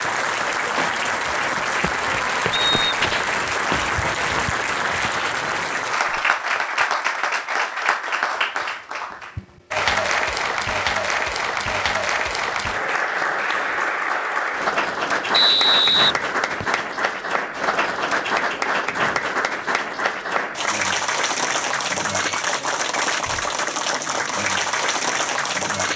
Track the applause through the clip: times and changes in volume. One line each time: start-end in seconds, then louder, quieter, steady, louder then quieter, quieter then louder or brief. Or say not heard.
0.0-25.9 steady.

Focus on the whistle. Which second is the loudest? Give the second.
16 s.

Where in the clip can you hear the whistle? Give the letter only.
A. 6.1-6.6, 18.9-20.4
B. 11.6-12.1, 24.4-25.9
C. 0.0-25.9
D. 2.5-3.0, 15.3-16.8
D.